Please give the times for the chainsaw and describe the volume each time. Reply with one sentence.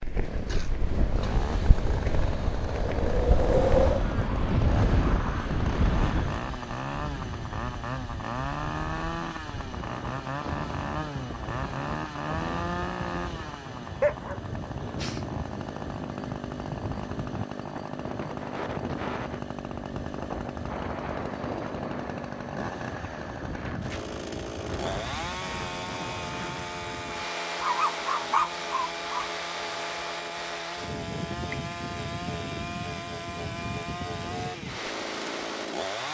You can hear the chainsaw from 0.0 to 36.0 s, at a steady volume.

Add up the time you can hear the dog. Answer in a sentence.
The dog can be heard for 3 seconds in total.